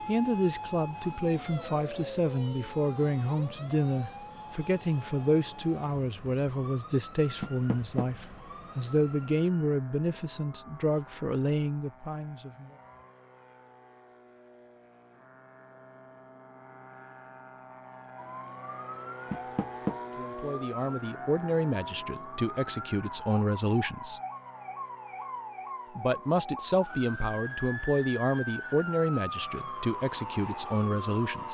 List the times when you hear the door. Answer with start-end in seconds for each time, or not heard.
7.4-8.1, 19.3-19.9.